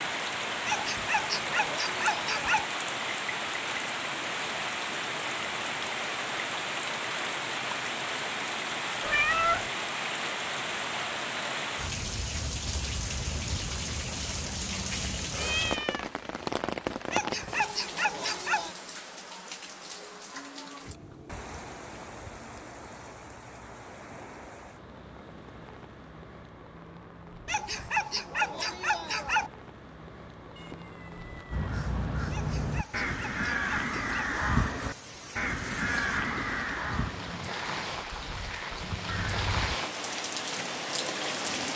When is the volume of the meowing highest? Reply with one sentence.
The loudest moment of the meowing is at 9 seconds.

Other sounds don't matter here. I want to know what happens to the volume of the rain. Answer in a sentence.
The loudness of the rain goes down, then up.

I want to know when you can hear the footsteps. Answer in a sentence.
The footsteps can't be heard in this clip.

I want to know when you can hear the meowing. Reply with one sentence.
The meowing can be heard from 9.0 to 9.7 s, from 15.3 to 16.1 s and from 30.6 to 31.6 s.